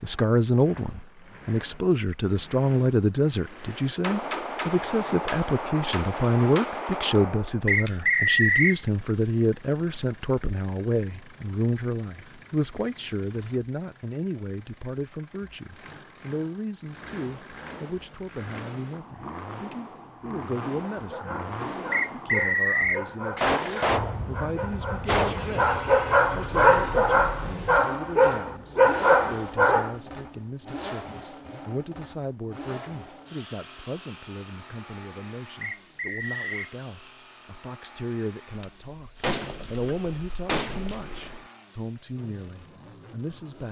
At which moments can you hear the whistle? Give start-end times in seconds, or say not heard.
7.7-8.8, 21.9-23.1, 35.6-36.7.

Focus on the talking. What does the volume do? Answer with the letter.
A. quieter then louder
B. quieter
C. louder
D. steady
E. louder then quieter
B.